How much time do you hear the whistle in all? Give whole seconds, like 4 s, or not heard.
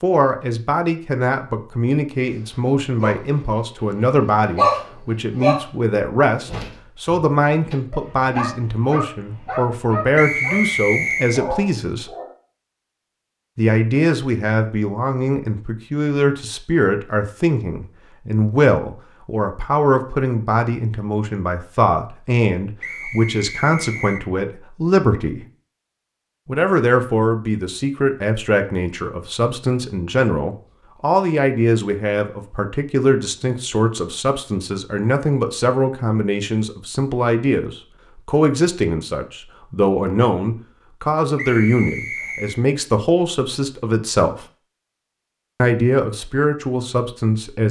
4 s.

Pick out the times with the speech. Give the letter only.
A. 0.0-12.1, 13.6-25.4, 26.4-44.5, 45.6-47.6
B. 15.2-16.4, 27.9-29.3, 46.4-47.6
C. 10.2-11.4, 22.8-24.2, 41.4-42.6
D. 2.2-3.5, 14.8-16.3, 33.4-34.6
A.